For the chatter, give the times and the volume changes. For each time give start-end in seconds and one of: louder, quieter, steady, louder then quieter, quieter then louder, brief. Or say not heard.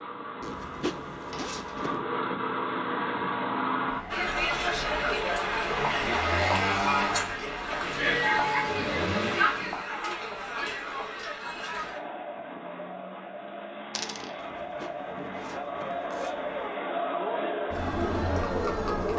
4.1-19.1 quieter then louder.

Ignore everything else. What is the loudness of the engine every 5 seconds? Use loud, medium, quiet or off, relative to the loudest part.
loud, loud, off, off.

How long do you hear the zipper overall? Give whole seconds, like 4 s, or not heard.
4 s.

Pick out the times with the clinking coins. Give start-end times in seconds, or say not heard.
1.3-1.9, 13.9-14.3.